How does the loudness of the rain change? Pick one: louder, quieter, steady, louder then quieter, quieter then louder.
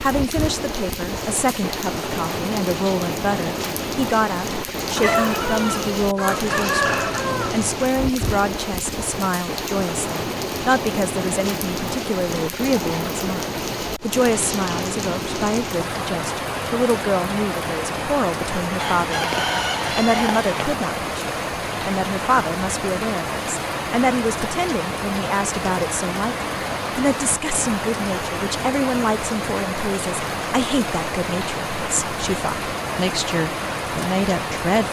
steady.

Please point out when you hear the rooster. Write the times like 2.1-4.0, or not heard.
5.0-7.8, 18.8-20.6.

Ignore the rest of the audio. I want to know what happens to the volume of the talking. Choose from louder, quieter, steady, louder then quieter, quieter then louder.
steady.